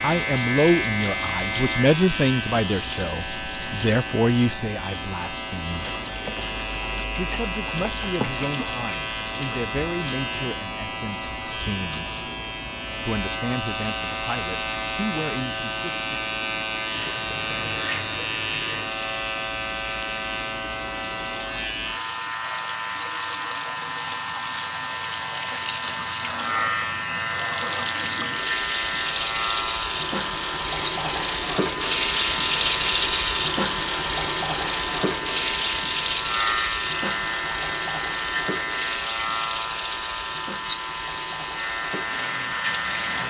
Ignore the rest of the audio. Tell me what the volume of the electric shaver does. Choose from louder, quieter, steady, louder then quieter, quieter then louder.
steady.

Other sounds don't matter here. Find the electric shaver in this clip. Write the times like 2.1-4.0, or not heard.
0.0-43.2.